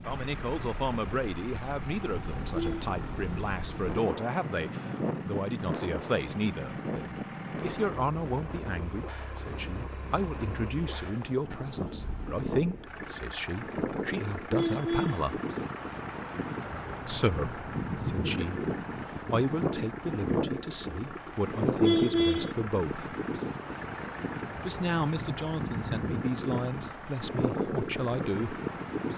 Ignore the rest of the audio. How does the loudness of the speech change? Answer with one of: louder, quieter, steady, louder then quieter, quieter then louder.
steady.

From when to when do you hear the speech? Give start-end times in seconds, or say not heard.
0.1-15.4, 17.1-23.1, 24.6-28.6.